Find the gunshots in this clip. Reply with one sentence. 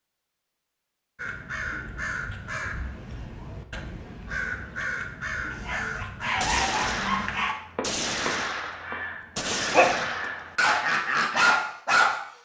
The gunshots can be heard from 6.4 to 10.6 s.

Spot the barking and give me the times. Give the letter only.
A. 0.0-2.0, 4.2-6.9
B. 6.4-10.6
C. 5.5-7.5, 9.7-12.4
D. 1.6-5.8
C.